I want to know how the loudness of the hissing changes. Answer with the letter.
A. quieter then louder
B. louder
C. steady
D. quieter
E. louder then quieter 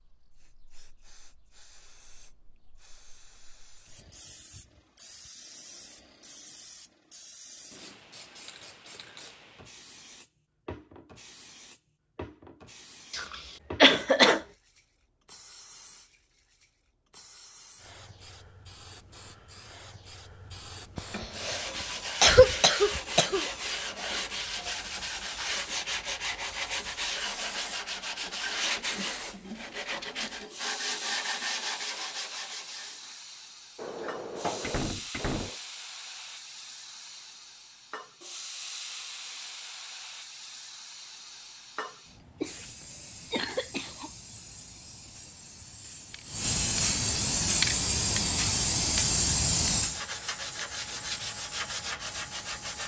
B.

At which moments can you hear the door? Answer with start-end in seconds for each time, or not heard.
33.8-35.5.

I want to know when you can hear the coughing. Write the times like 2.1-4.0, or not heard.
13.1-14.4, 20.9-21.6, 22.2-23.5, 42.4-44.1.